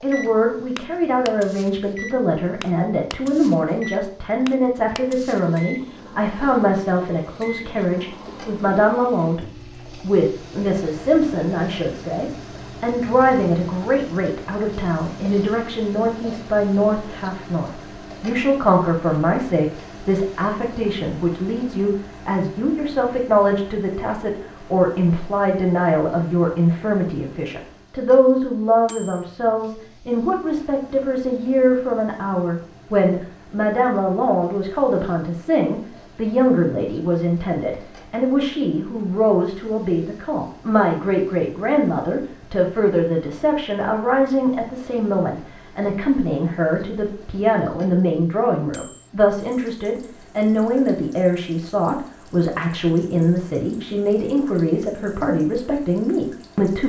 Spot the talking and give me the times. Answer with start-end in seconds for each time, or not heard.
0.0-56.8.